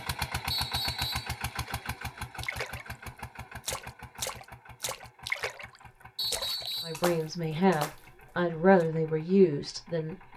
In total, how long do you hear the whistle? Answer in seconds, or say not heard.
2 s.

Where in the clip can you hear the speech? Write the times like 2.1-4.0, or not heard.
6.8-10.3.